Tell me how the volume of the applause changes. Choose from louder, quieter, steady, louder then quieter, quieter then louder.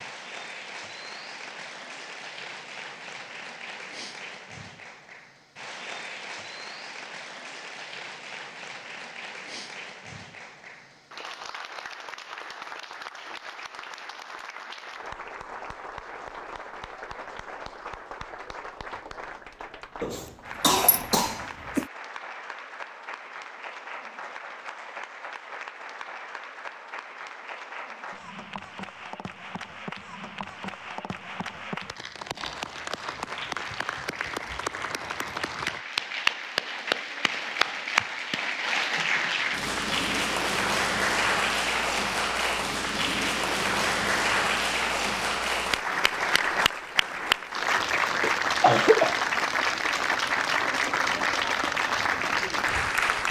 louder.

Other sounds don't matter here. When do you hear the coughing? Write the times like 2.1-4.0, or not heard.
20.0-21.9, 48.0-49.2.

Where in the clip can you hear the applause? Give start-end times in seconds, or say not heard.
0.0-53.2.